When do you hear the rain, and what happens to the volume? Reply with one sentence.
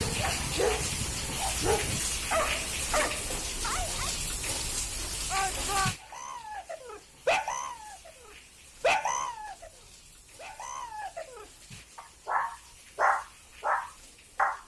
The rain can be heard from 0.0 to 14.6 s, getting quieter.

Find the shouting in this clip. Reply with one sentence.
The shouting can be heard from 5.3 to 6.0 s.